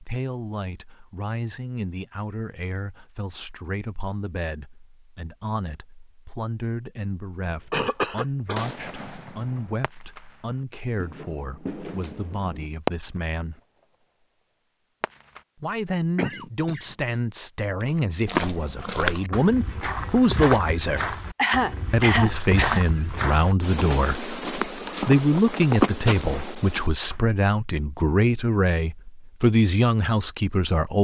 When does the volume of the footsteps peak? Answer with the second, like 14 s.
26 s.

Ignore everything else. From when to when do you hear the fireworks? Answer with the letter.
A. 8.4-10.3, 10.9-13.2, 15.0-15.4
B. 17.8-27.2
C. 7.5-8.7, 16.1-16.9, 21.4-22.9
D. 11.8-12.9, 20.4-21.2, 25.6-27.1
A.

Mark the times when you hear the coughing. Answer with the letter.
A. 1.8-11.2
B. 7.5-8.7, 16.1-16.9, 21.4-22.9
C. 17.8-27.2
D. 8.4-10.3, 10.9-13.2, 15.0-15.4
B.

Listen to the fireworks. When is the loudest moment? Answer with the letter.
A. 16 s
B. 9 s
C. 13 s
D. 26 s
C.